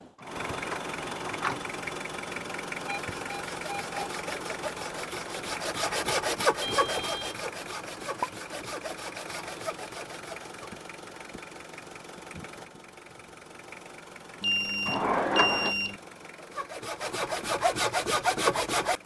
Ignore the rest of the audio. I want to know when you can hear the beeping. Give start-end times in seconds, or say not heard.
2.9-4.0, 6.7-7.3, 14.4-16.0.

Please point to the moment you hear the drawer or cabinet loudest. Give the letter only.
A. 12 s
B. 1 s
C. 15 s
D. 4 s
C.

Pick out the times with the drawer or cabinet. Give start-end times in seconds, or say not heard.
0.1-1.6, 14.8-15.8.